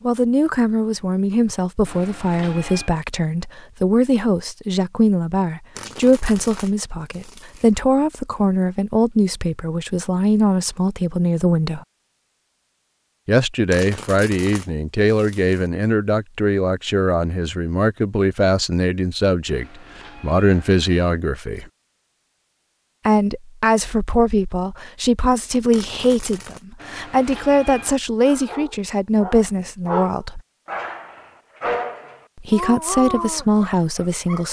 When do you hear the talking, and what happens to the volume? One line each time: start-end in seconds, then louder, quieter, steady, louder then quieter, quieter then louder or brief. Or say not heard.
0.0-11.8 steady
13.2-21.6 steady
23.1-30.4 steady
32.4-34.4 brief.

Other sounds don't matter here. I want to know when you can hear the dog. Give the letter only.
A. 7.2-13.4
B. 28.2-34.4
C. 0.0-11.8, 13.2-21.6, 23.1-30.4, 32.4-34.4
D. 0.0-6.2
B.